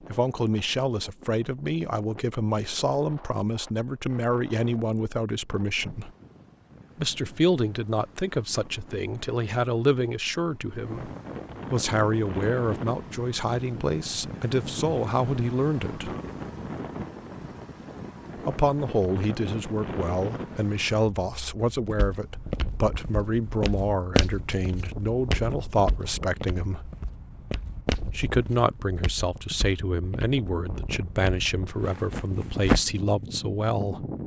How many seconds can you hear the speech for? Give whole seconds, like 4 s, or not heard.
29 s.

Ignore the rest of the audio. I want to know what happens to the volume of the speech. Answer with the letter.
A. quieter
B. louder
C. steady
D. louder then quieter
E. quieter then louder
C.